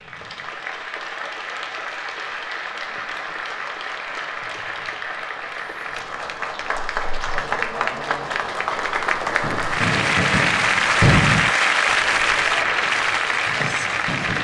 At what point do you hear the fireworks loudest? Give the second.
11 s.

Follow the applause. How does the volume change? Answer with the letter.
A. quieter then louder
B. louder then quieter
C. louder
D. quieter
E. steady
C.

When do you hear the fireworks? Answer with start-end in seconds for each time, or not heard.
9.4-14.3.